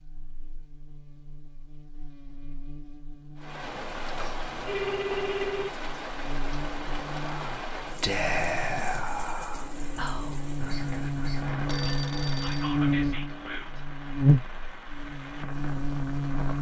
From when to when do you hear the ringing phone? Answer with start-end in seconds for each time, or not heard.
3.8-5.8, 11.7-12.8.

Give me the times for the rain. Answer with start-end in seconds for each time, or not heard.
3.4-16.5.